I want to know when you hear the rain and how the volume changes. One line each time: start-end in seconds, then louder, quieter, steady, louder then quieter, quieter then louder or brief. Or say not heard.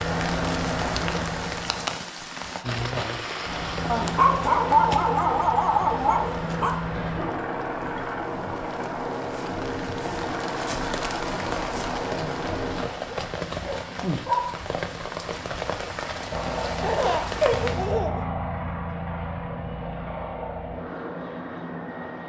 0.0-17.9 quieter then louder.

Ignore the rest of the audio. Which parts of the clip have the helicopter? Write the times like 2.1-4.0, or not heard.
0.0-1.9, 3.5-12.8, 16.3-22.2.